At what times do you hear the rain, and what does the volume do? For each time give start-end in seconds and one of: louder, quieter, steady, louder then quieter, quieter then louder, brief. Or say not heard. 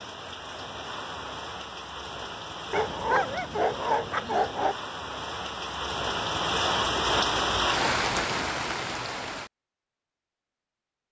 0.0-9.5 louder.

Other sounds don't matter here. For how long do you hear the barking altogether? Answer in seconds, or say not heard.
2 s.